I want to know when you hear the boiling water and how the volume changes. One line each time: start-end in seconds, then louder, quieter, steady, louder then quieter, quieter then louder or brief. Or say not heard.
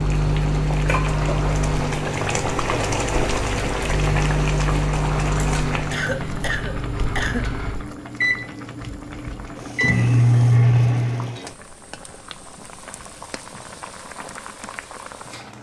0.0-15.5 quieter.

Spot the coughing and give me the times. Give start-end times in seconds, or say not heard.
5.9-7.5.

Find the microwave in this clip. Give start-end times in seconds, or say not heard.
0.0-11.4.